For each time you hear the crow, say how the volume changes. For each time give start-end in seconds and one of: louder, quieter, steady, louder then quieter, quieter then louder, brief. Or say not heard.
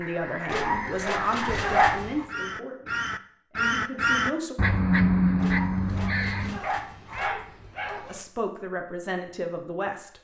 0.0-7.4 louder then quieter.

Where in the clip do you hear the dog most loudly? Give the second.
2 s.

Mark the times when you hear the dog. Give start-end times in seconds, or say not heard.
0.5-2.2, 5.4-8.2.